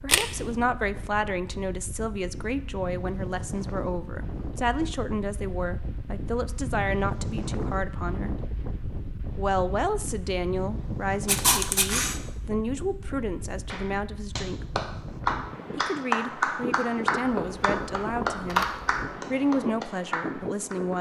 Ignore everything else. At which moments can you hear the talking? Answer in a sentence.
The talking can be heard from 0.0 to 8.3 s, from 9.3 to 14.8 s and from 15.8 to 20.9 s.